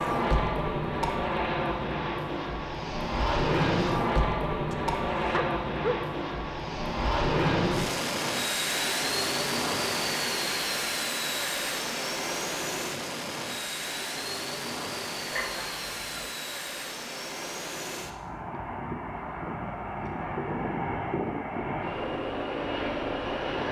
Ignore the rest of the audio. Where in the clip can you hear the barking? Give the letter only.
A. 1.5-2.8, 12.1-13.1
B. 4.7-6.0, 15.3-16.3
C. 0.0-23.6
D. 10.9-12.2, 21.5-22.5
B.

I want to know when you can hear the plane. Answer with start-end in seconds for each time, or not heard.
0.0-23.6.